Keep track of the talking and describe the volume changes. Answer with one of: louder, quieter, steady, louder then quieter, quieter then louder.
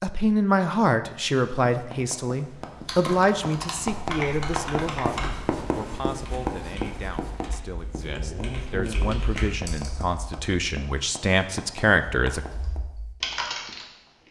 quieter then louder.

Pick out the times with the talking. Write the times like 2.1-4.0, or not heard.
0.0-12.4.